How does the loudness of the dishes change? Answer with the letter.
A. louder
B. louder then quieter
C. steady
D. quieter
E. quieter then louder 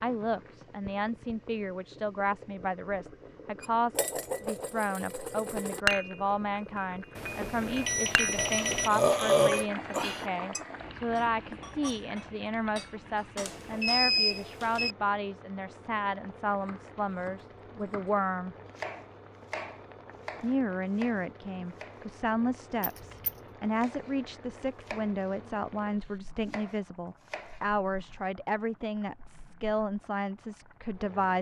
B.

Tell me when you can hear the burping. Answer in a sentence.
You can hear the burping from 8.3 to 10.2 s.